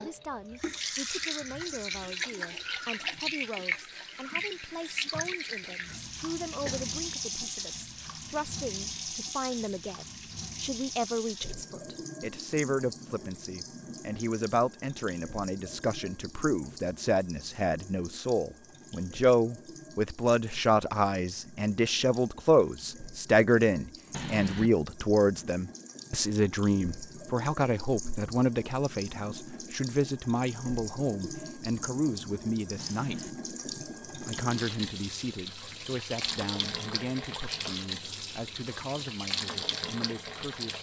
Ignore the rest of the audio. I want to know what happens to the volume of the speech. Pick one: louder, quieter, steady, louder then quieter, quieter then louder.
louder then quieter.